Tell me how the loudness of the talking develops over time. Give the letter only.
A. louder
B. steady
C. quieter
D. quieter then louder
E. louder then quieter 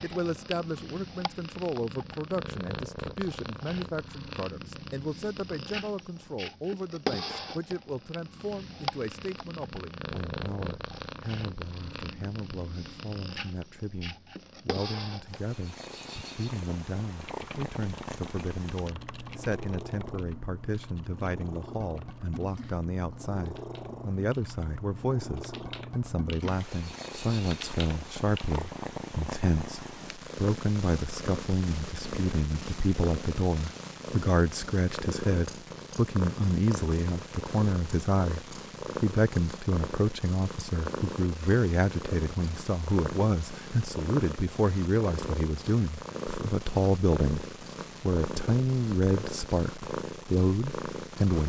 A.